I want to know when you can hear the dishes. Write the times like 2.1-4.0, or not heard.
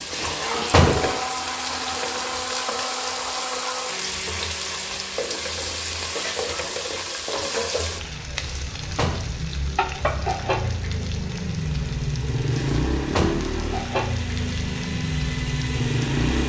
not heard.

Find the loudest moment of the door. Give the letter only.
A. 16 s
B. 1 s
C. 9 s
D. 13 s
B.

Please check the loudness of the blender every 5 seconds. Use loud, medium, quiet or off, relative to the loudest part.
loud, medium, medium, loud.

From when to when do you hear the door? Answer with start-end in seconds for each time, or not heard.
0.1-1.1, 8.3-9.2, 12.5-13.5.